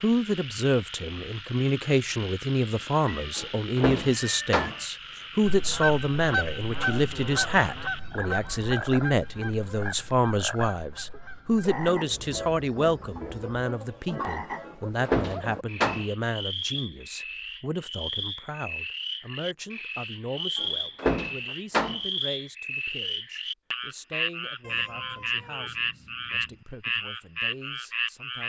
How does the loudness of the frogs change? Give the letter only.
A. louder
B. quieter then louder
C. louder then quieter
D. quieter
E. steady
A.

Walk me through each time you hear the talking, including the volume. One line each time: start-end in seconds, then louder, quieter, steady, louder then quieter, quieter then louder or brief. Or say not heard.
0.0-28.4 quieter.